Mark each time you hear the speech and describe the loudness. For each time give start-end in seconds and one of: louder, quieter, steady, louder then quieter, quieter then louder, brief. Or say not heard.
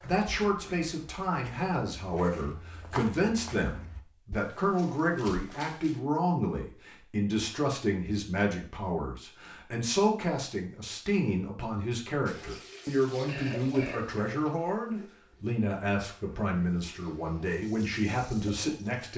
0.0-19.1 steady.